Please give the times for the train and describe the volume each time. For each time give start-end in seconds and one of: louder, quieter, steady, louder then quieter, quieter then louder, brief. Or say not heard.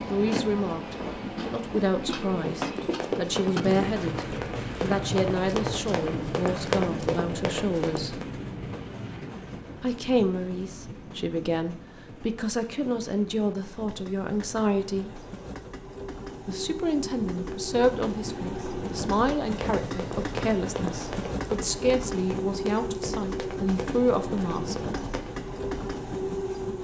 0.0-26.8 quieter then louder.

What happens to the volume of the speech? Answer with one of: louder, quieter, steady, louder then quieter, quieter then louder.
steady.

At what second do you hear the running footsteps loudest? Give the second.
7 s.